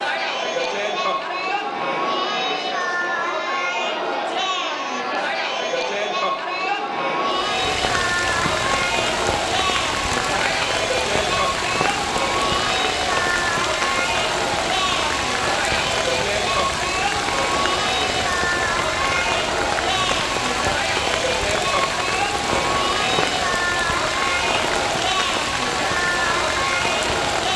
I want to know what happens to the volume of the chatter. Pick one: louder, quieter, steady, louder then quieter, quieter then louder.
steady.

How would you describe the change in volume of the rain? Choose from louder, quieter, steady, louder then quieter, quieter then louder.
steady.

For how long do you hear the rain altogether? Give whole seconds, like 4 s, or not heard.
20 s.